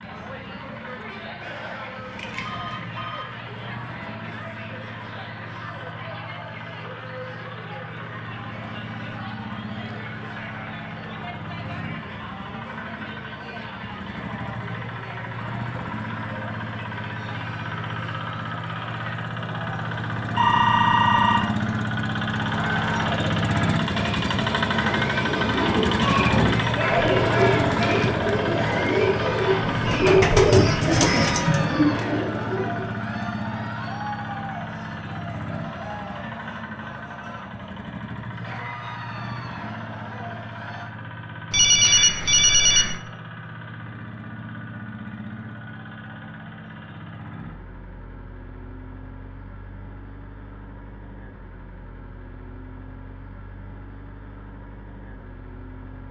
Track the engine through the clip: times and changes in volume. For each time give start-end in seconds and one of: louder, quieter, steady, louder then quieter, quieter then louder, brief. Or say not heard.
0.0-56.0 louder then quieter.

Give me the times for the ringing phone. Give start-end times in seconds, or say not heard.
1.4-3.2, 20.4-21.5, 41.5-43.0.